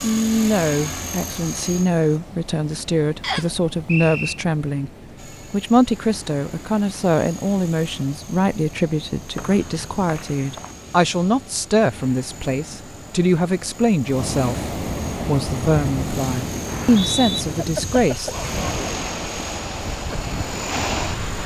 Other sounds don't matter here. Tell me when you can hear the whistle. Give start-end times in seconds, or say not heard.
3.2-4.3, 9.3-10.7, 16.6-17.4.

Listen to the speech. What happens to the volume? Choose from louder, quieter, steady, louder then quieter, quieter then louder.
steady.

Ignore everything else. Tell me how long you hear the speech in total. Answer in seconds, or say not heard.
18 s.